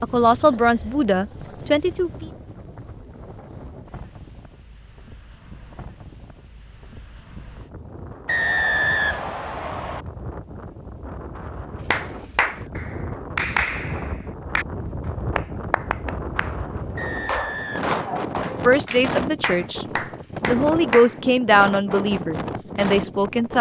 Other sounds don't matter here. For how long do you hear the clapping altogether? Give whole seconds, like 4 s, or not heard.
9 s.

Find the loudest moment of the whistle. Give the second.
9 s.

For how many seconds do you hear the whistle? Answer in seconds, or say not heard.
3 s.